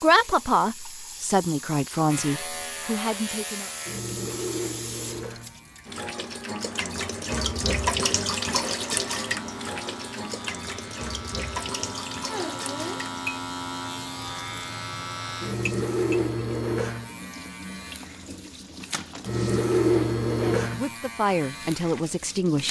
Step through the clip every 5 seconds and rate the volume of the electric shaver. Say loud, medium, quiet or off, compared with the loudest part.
medium, quiet, medium, loud, loud.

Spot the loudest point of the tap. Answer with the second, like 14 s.
8 s.